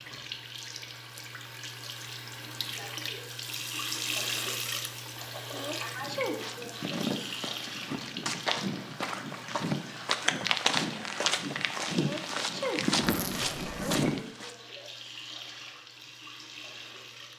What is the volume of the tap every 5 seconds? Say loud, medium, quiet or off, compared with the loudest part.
loud, loud, medium, medium.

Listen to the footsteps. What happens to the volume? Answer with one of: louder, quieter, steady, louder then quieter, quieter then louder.
louder.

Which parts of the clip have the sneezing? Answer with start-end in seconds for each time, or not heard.
5.5-6.3, 11.9-12.8.